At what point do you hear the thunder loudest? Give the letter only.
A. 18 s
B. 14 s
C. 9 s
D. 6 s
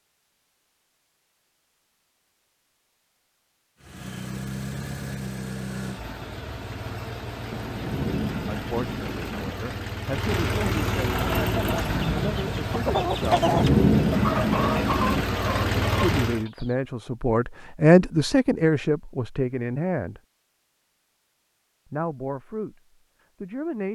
B.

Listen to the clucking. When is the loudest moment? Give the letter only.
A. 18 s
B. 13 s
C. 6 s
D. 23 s
B.